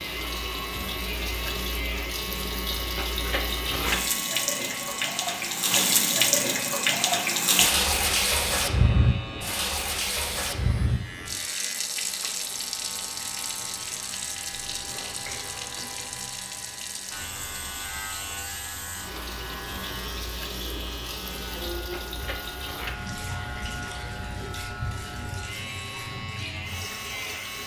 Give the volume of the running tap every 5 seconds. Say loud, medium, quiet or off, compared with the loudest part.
medium, loud, medium, quiet, quiet, quiet.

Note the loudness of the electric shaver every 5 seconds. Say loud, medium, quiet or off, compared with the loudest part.
loud, loud, medium, loud, loud, loud.